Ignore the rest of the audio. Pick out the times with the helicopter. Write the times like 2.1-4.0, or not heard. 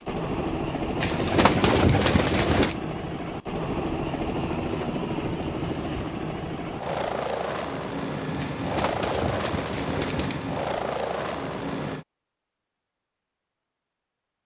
0.0-12.1.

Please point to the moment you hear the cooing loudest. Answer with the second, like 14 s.
2 s.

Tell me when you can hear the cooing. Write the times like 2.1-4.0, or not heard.
1.0-2.8, 8.3-10.4.